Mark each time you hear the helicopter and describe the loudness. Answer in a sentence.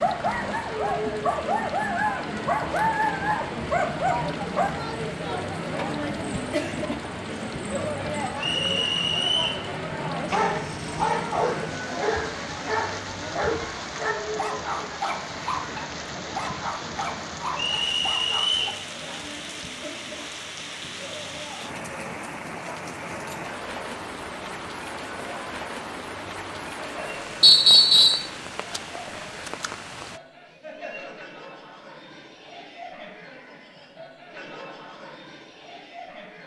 You can't hear the helicopter here.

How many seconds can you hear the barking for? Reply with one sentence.
The barking can be heard for 13 seconds in total.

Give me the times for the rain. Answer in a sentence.
The rain can be heard from 0.0 to 30.2 s.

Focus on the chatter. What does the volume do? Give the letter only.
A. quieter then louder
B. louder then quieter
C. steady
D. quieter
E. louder
D.